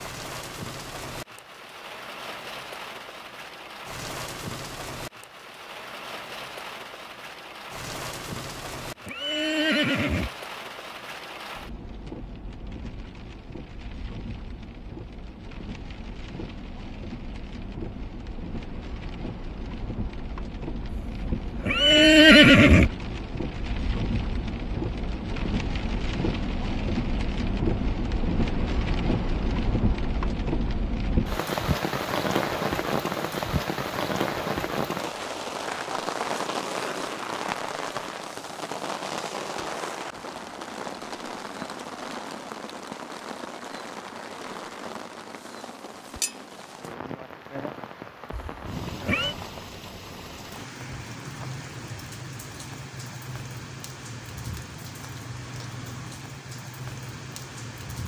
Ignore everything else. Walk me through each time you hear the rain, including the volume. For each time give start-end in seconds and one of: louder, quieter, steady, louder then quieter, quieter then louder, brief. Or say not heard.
0.0-58.0 louder then quieter.